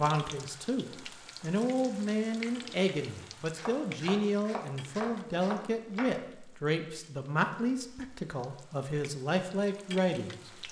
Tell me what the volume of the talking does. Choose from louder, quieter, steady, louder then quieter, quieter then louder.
steady.